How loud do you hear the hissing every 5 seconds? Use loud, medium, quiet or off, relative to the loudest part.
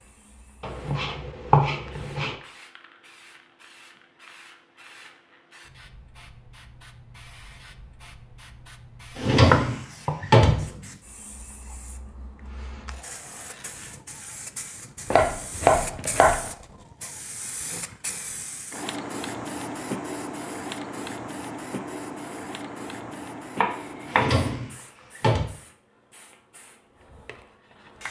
quiet, quiet, medium, loud, loud, quiet.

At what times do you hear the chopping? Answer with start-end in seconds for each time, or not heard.
0.6-2.4, 9.5-10.3, 15.1-16.5, 23.6-24.4.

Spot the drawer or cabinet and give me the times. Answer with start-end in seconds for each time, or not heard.
9.2-10.7, 24.1-25.5.